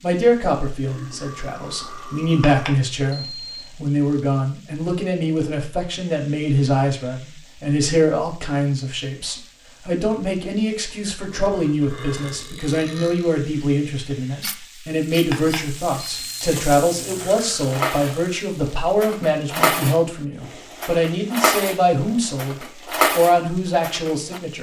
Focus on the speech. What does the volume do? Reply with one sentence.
The loudness of the speech stays about the same.